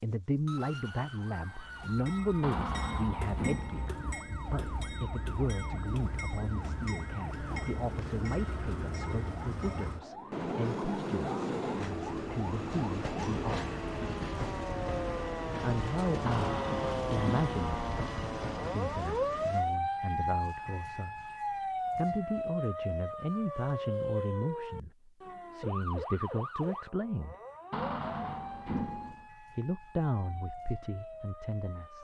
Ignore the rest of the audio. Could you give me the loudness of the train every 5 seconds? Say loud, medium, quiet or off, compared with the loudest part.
medium, medium, loud, loud, off, off, off.